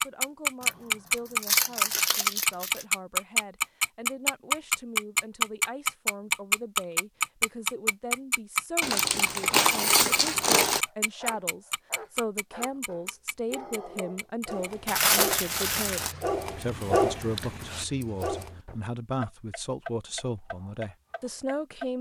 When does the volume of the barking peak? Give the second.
17 s.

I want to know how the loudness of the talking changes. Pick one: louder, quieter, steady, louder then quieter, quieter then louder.
louder.